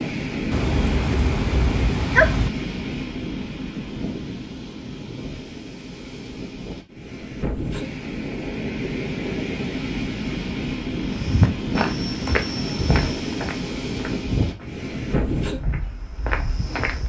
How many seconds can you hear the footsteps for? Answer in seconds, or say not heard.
6 s.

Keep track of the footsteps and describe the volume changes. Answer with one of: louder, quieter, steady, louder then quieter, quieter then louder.
quieter then louder.